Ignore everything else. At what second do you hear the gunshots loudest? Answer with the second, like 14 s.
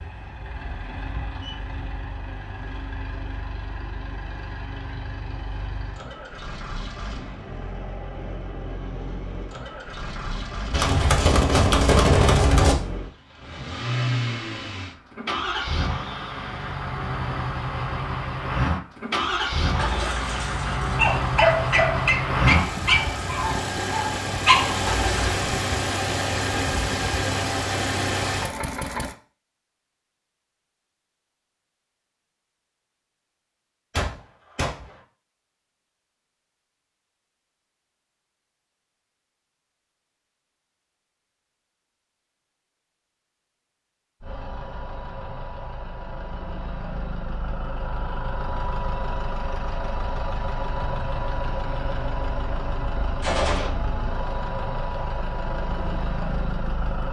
12 s.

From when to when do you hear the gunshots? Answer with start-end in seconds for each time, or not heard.
10.7-12.8, 34.0-34.9, 53.2-53.7.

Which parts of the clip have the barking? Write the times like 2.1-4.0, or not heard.
19.8-25.1.